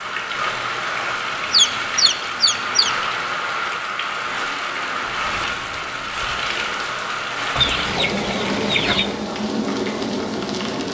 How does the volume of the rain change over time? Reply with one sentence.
The loudness of the rain stays about the same.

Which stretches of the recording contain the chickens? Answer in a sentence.
The chickens can be heard from 1.5 to 2.9 s and from 7.5 to 9.1 s.